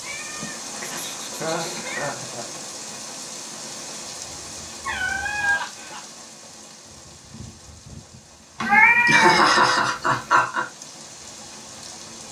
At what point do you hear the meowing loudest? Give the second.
9 s.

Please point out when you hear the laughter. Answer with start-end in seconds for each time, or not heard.
1.3-2.5, 5.4-6.0, 8.6-10.7.